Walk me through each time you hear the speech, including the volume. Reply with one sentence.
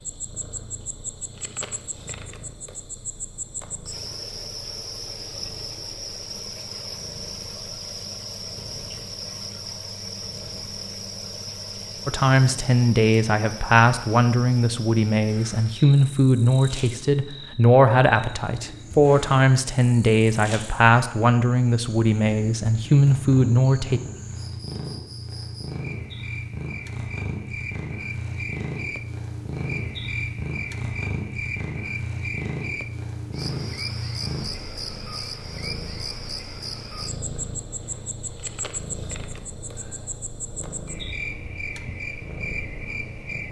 The speech can be heard from 12.1 to 24.0 s, at a steady volume.